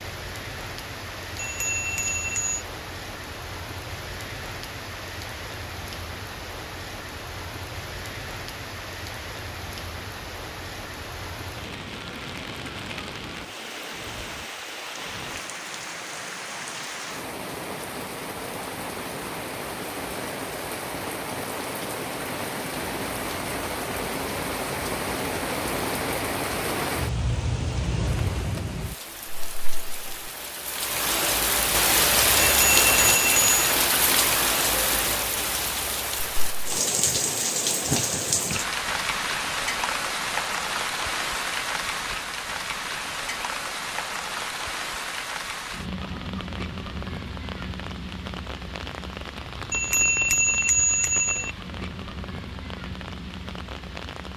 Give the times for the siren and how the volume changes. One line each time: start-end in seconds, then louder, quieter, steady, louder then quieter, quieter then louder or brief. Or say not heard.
not heard.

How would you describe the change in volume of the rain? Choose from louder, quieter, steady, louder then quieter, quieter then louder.
louder then quieter.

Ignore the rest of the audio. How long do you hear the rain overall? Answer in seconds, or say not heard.
54 s.